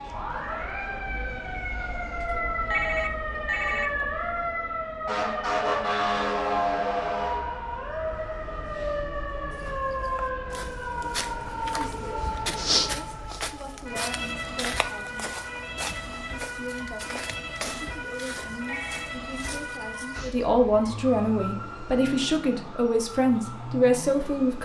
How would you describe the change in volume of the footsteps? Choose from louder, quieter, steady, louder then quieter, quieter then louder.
louder then quieter.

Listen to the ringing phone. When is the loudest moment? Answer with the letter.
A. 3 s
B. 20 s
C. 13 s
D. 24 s
A.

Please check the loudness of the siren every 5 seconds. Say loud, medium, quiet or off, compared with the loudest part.
loud, loud, medium, medium, medium.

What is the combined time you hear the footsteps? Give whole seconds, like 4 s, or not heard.
11 s.